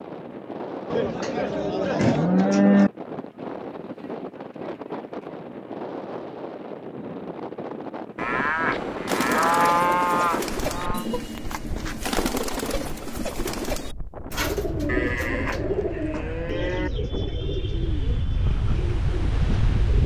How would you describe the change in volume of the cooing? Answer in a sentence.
The loudness of the cooing goes down.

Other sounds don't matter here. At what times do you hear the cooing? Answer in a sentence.
You can hear the cooing from 9.1 to 20.0 s.